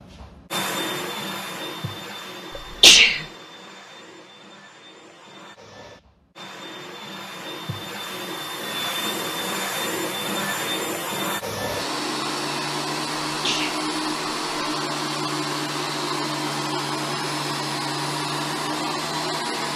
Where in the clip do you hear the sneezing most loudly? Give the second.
3 s.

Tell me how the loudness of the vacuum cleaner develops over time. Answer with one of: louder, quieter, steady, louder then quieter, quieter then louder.
quieter then louder.